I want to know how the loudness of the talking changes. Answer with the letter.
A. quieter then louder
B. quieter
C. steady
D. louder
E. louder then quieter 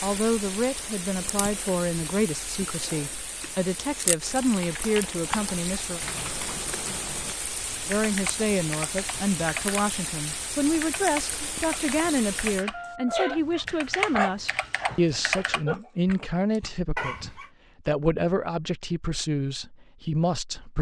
C.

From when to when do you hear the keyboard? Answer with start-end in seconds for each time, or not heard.
4.4-15.7.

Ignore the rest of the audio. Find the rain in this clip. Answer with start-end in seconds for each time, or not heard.
0.0-12.7.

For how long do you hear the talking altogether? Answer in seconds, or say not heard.
19 s.